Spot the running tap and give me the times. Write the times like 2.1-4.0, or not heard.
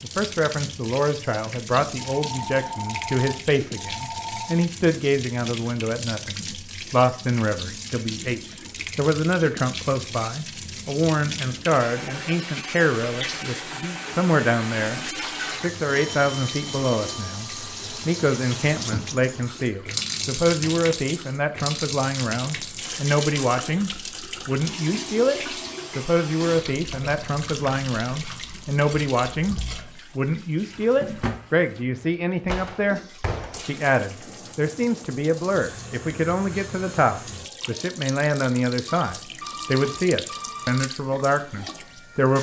0.0-42.3.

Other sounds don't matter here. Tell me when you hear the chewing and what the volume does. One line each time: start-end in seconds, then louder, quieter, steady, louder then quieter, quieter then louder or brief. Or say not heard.
not heard.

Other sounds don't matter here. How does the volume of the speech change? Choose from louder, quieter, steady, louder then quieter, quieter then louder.
steady.